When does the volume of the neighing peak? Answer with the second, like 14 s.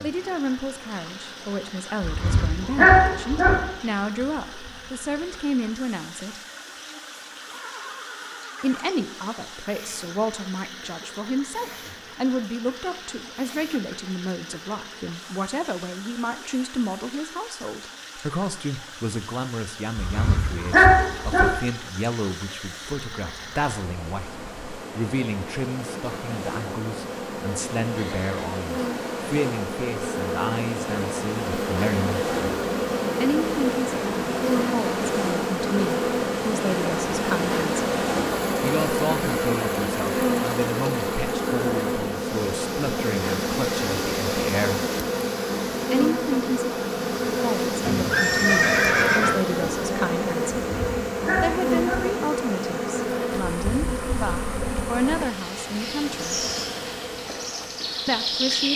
49 s.